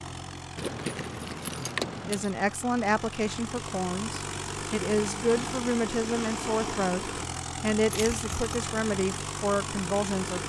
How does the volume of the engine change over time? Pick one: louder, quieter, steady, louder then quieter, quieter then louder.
louder.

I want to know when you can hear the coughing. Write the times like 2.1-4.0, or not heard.
not heard.